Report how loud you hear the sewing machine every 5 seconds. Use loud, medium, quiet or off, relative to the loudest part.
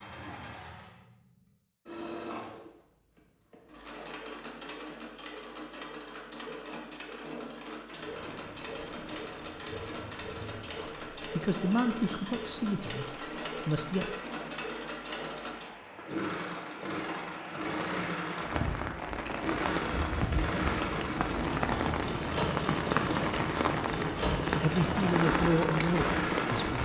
medium, medium, medium, loud, loud, loud.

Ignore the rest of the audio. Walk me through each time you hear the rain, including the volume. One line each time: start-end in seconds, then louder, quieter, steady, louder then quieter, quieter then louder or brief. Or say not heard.
8.0-26.8 louder.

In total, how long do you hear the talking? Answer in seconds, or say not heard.
5 s.